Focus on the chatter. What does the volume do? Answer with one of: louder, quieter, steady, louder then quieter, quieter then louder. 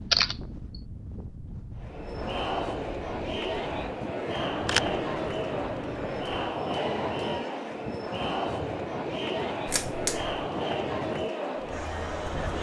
steady.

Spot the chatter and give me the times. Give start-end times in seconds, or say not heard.
1.8-12.5.